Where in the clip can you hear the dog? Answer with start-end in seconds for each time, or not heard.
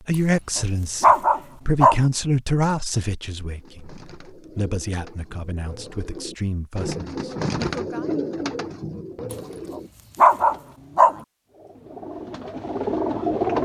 0.6-2.0, 9.3-11.2.